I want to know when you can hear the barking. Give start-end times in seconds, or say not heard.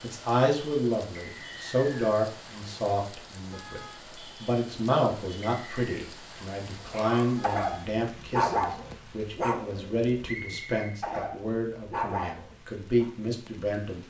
6.9-13.1.